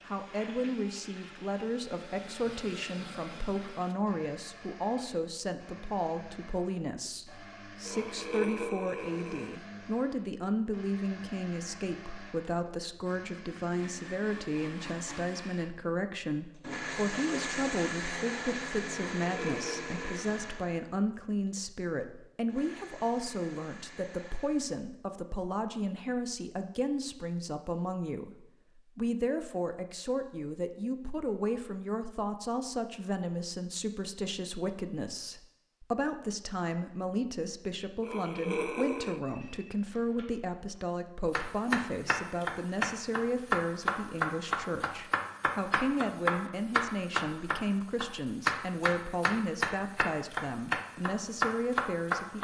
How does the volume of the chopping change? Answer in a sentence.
The loudness of the chopping stays about the same.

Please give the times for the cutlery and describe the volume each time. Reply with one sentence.
The cutlery can't be heard in this clip.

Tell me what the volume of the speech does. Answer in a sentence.
The loudness of the speech stays about the same.